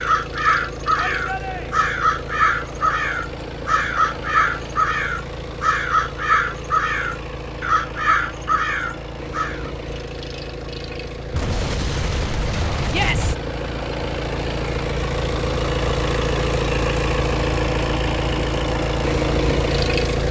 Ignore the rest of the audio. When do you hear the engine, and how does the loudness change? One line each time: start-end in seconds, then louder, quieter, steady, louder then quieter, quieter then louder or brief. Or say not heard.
0.0-20.2 louder.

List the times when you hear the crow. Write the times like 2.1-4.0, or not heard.
0.0-9.7.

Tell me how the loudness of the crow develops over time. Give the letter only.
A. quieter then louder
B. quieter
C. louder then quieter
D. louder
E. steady
E.